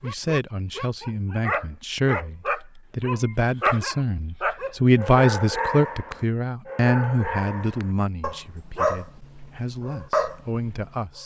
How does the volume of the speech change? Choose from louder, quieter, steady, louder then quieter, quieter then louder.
louder then quieter.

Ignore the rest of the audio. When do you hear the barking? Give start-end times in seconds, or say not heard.
0.0-11.0.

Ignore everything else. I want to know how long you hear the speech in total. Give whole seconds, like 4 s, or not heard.
11 s.